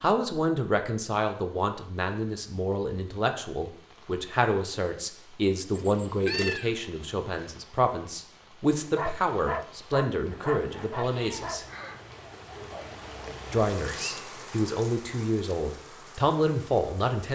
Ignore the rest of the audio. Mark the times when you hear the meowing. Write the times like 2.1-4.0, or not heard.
5.7-6.7, 10.2-11.6.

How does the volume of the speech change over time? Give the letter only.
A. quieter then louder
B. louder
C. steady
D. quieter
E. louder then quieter
C.